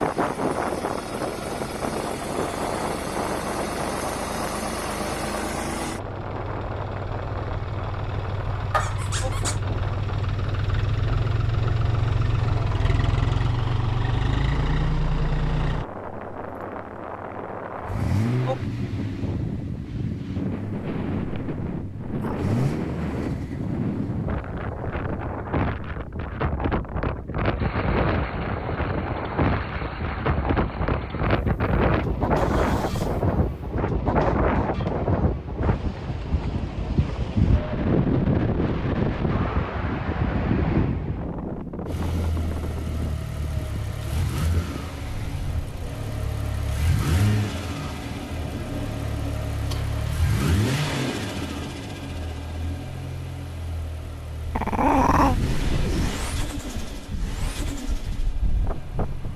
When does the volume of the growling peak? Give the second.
55 s.